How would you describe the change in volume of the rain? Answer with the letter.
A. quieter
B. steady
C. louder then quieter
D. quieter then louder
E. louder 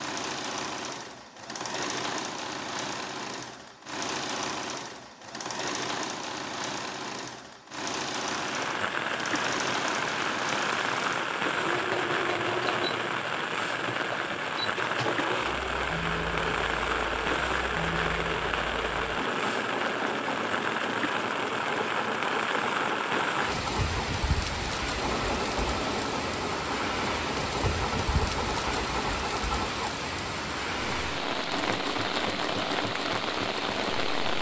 B.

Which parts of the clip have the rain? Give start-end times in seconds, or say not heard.
8.2-34.3.